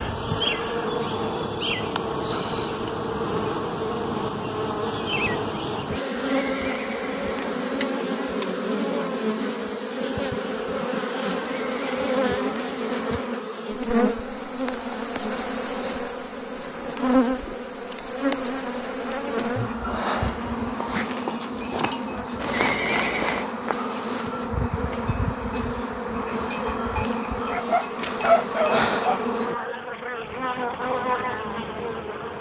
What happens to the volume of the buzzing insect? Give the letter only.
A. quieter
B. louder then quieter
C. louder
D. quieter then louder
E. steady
E.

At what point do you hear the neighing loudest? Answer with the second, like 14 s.
23 s.